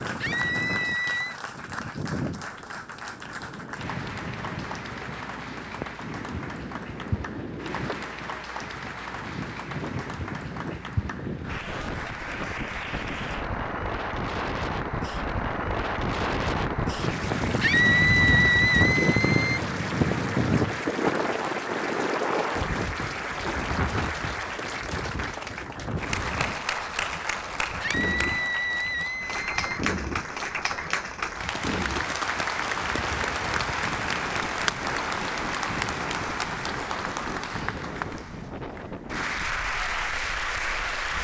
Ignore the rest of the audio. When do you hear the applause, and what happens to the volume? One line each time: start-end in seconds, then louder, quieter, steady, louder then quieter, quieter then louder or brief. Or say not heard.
0.0-41.1 louder.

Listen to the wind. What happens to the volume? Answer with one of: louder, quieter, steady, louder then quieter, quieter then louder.
louder then quieter.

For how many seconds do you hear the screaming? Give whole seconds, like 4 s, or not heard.
5 s.